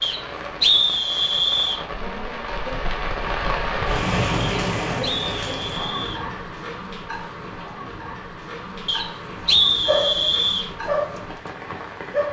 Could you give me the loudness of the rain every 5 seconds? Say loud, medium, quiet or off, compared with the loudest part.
loud, medium, medium.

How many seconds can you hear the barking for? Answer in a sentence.
You can hear the barking for 3 seconds altogether.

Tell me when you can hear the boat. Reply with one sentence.
The boat can't be heard in this clip.